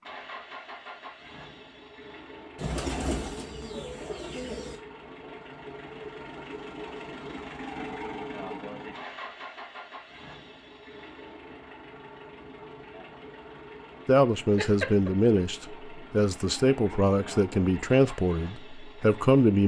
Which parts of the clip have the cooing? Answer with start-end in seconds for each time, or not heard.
2.5-4.8.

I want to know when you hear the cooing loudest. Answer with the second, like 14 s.
3 s.